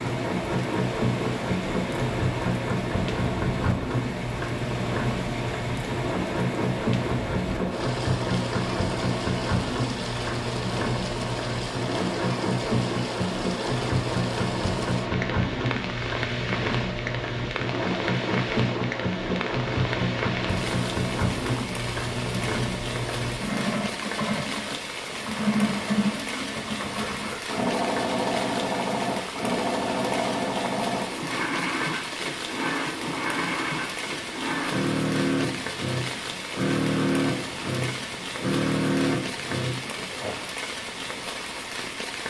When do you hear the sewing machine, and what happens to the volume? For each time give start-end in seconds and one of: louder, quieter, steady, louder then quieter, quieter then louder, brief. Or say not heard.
0.0-40.4 steady.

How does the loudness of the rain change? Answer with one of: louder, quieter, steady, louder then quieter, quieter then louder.
steady.